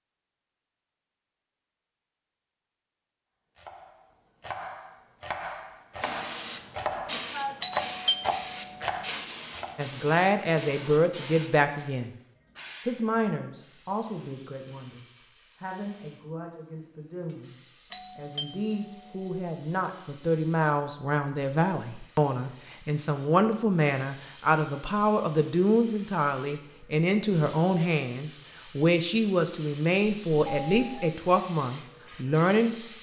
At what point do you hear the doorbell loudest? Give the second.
8 s.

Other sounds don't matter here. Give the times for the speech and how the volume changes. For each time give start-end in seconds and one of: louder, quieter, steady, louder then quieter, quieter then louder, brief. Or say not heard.
9.8-12.2 brief
12.8-32.9 louder.